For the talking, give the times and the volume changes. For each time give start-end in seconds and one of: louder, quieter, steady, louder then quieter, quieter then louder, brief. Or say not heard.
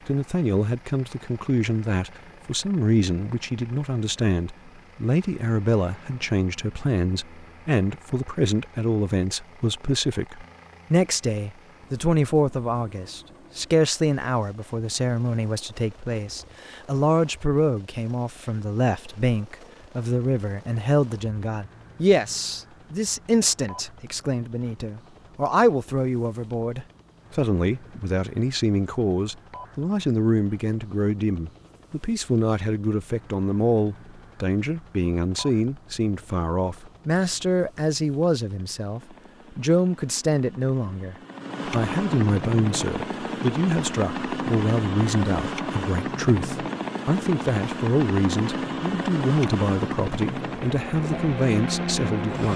0.1-52.5 steady.